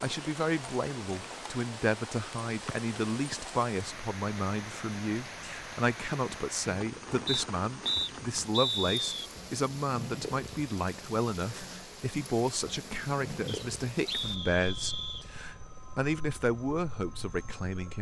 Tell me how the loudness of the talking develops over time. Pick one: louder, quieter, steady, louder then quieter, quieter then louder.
steady.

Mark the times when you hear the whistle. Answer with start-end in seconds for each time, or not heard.
2.6-3.4, 7.2-9.1, 13.4-15.2.